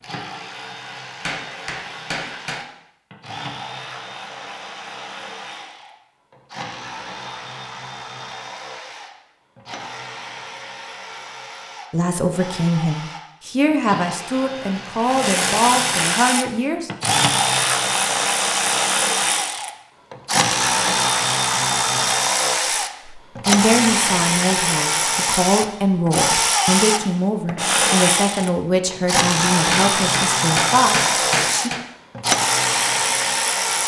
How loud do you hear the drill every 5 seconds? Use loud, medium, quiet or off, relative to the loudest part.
quiet, quiet, quiet, loud, loud, loud, loud.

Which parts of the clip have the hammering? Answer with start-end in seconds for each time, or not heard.
1.2-2.6, 29.7-31.8.